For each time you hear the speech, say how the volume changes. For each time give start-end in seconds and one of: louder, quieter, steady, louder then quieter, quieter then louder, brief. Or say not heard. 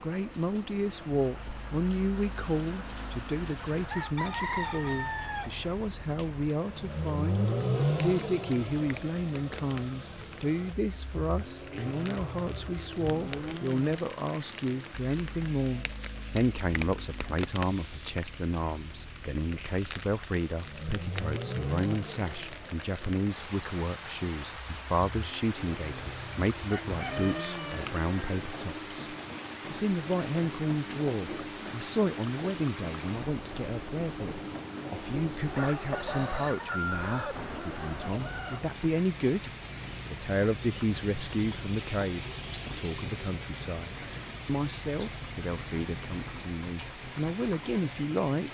0.0-48.4 steady.